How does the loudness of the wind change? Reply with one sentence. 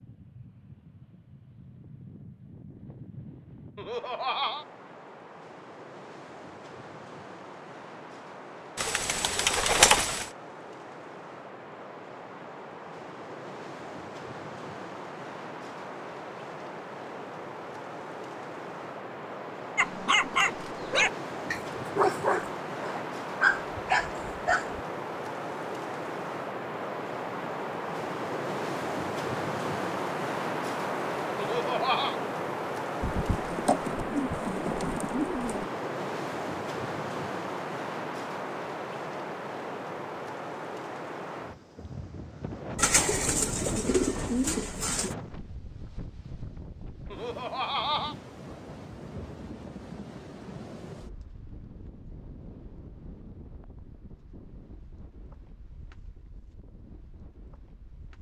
The loudness of the wind goes up, then down.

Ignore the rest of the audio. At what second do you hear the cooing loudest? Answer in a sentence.
The loudest moment of the cooing is at 10 seconds.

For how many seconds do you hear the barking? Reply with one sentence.
You can hear the barking for 5 seconds altogether.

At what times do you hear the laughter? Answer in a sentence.
You can hear the laughter from 3.8 to 4.7 s, from 31.4 to 32.1 s and from 47.1 to 48.1 s.